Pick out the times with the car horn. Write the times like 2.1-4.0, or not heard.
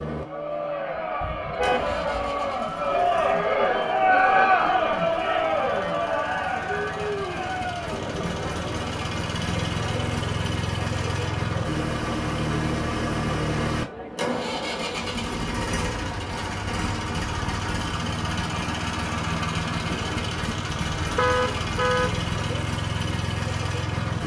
1.2-2.5, 21.0-22.2.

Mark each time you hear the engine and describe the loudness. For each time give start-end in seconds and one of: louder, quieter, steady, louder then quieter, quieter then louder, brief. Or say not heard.
0.0-24.2 louder.